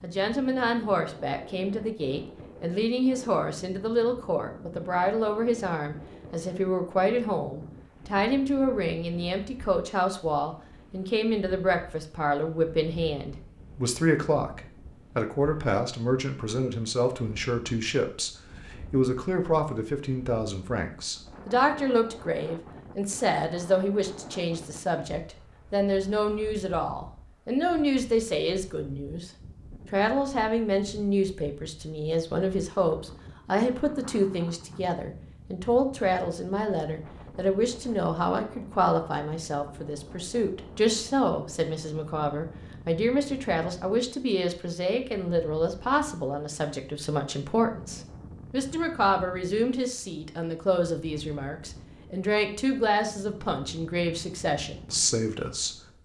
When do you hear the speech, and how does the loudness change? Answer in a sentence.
The speech can be heard from 0.0 to 29.3 s, at a steady volume; and from 29.9 to 55.8 s, at a steady volume.